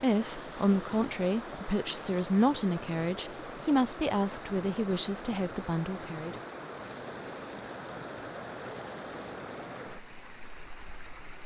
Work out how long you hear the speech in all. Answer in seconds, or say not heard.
6 s.